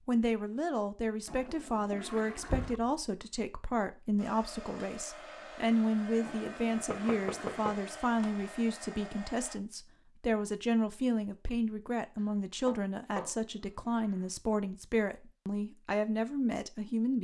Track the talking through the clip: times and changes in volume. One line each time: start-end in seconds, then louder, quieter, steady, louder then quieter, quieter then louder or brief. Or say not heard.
0.1-17.1 steady.